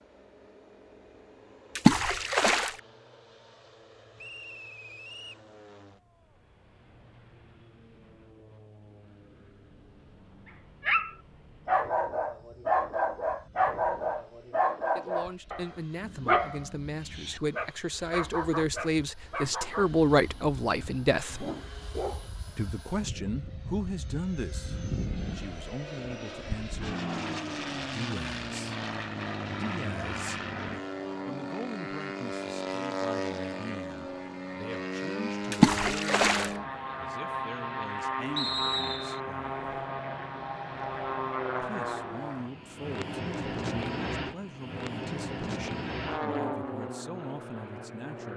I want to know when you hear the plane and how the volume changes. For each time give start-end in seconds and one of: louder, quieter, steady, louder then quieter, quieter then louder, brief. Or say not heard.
0.0-48.3 louder.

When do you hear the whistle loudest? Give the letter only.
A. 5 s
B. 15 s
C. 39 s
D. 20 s
C.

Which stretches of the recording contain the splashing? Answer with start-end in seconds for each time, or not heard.
1.8-2.8, 35.5-36.5.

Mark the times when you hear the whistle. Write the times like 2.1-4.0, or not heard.
4.2-5.4, 38.4-39.2.